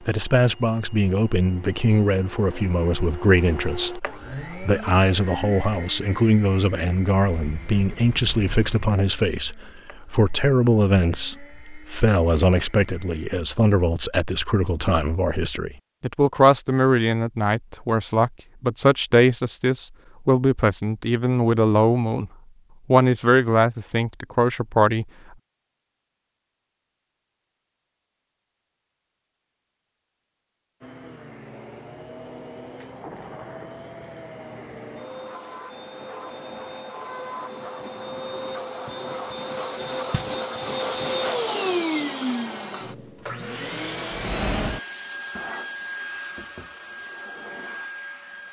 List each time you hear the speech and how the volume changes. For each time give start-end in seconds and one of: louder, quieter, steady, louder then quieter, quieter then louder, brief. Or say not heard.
0.1-22.3 steady
22.9-25.1 brief.